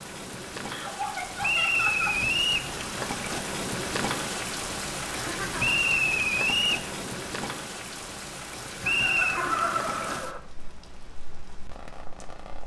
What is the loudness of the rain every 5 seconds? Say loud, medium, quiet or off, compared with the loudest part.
loud, loud, medium.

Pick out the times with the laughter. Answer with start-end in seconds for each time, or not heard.
0.7-2.2, 5.1-6.0, 8.8-10.4.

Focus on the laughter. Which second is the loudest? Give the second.
10 s.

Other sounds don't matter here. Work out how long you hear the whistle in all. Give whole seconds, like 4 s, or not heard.
3 s.